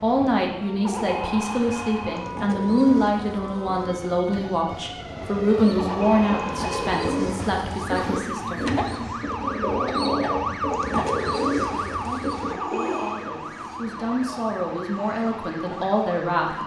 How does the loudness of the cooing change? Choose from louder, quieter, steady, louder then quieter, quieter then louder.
louder.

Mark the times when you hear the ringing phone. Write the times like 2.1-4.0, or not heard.
0.8-2.3, 5.8-7.0, 12.5-13.2.